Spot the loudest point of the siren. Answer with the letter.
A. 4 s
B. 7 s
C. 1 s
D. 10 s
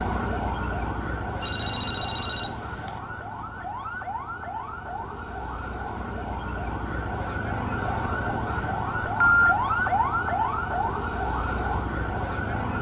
D.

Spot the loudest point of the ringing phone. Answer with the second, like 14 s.
9 s.